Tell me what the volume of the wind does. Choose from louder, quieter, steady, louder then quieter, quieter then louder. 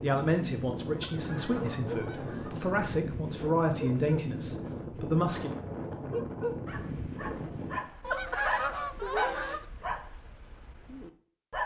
steady.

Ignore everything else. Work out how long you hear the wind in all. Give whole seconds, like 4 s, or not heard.
8 s.